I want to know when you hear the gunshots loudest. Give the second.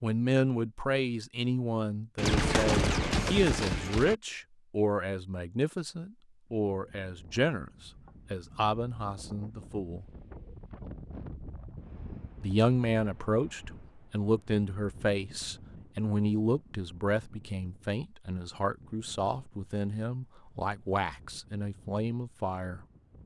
3 s.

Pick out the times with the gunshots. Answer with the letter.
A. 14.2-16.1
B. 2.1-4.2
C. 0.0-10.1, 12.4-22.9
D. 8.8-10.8
B.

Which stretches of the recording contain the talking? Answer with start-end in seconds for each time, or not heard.
0.0-10.1, 12.4-22.9.